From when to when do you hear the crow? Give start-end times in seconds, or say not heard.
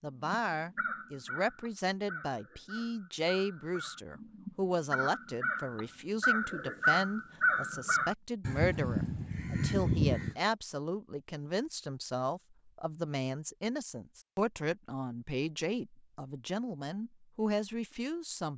0.2-10.3.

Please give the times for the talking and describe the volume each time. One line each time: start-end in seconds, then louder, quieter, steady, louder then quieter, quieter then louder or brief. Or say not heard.
0.0-18.5 steady.